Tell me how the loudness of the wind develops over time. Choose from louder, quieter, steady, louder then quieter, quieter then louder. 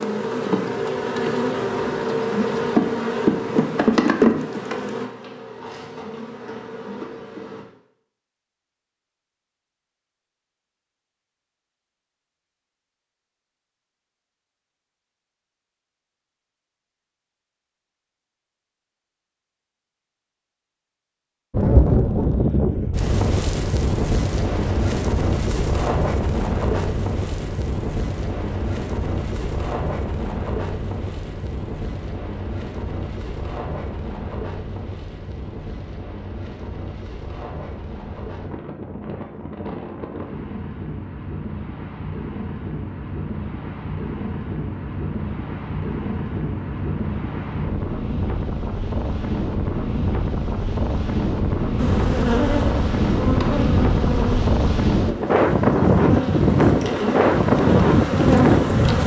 quieter then louder.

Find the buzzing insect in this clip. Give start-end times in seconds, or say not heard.
0.0-7.7, 51.8-59.0.